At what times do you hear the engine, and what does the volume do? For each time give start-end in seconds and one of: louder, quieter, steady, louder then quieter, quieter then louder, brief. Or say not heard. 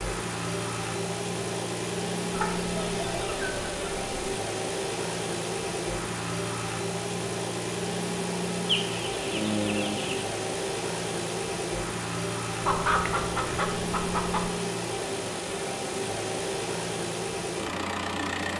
0.0-18.5 steady.